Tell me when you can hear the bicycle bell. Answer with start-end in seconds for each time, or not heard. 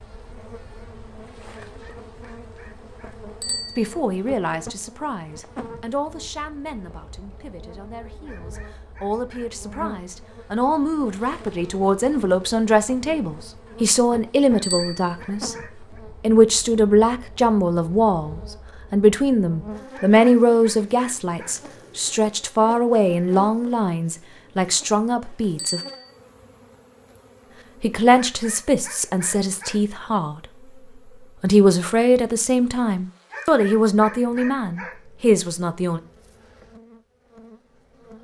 3.4-3.9, 14.6-15.1, 25.6-26.1.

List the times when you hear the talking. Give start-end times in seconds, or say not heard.
3.8-15.6, 16.2-25.8, 27.8-30.4, 31.4-36.0.